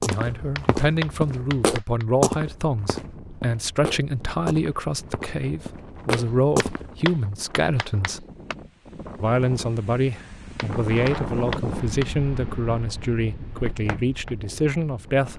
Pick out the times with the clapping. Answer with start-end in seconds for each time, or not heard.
0.1-2.0, 6.1-8.6, 10.6-12.1.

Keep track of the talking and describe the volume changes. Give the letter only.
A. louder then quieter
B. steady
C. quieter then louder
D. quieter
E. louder
B.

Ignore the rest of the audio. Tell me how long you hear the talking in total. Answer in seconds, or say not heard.
14 s.